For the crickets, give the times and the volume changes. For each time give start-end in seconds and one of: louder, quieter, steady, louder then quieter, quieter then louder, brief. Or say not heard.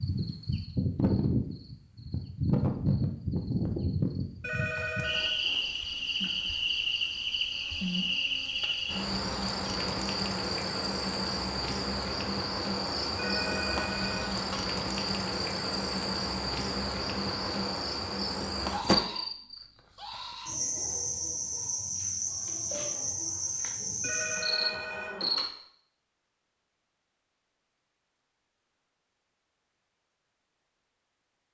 0.0-25.5 steady.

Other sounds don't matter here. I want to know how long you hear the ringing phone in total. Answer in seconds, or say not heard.
4 s.